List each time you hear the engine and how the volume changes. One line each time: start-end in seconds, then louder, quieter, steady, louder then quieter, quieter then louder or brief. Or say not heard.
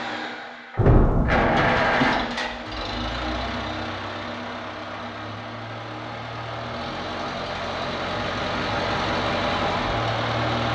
0.0-10.6 quieter then louder.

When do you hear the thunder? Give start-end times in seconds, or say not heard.
0.8-2.1.